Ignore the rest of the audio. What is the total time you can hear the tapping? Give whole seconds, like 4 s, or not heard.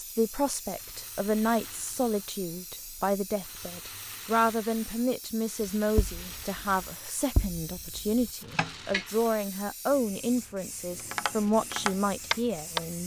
5 s.